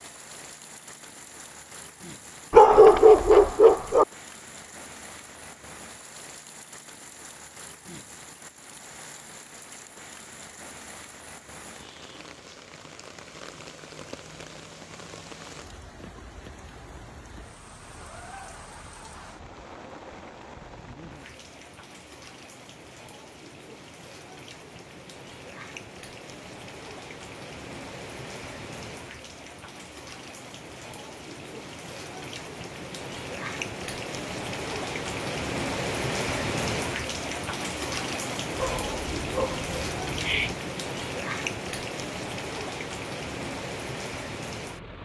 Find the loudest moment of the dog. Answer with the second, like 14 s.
3 s.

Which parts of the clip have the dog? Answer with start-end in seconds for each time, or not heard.
2.5-4.0, 38.5-40.5.